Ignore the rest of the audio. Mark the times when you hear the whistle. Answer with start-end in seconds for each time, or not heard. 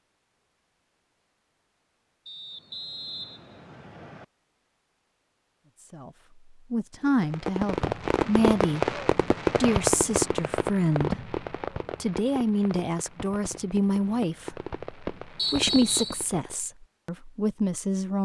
2.2-4.2, 15.3-16.2.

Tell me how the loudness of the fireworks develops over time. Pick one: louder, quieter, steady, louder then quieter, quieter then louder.
quieter then louder.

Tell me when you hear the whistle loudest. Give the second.
16 s.